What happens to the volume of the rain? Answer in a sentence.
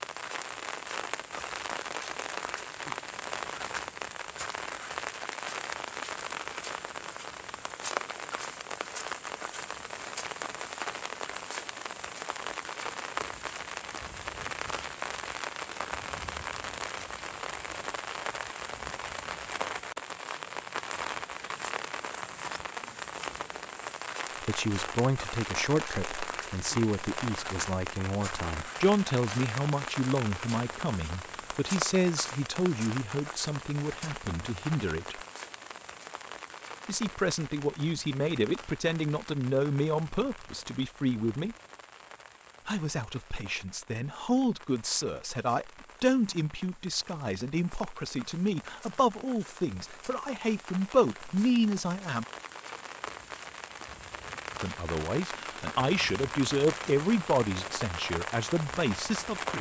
The volume of the rain goes down, then up.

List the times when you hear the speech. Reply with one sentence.
You can hear the speech from 24.4 to 35.2 s, from 36.9 to 41.5 s, from 42.6 to 52.2 s and from 54.6 to 59.5 s.